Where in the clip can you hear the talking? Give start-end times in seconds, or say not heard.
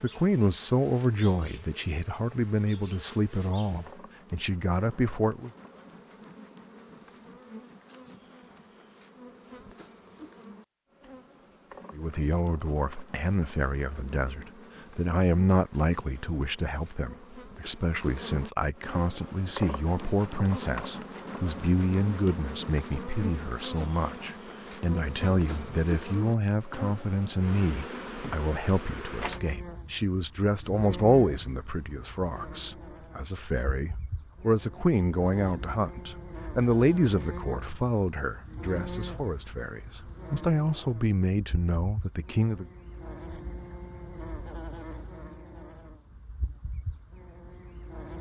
0.0-5.5, 11.9-42.6.